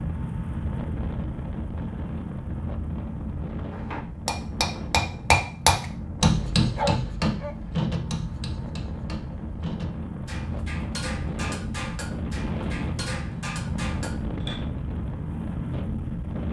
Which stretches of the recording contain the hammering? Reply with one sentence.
You can hear the hammering from 3.7 to 14.6 s.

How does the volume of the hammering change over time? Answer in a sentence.
The loudness of the hammering goes down.